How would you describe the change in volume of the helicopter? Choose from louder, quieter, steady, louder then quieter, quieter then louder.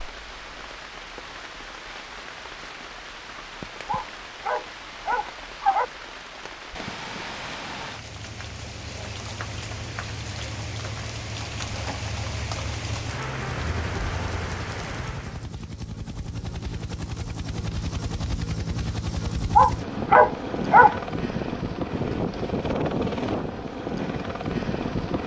louder.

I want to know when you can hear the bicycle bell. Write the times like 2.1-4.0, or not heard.
not heard.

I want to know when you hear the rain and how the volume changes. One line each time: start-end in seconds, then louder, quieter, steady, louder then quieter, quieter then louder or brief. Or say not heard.
0.0-15.5 louder.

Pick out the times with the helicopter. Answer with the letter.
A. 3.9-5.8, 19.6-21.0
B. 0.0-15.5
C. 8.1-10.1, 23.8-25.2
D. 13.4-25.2
D.